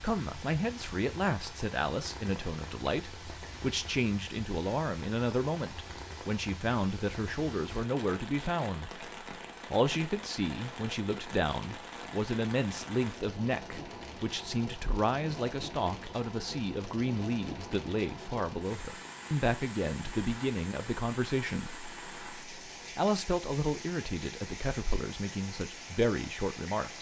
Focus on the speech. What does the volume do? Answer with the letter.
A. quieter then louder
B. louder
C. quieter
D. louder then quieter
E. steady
E.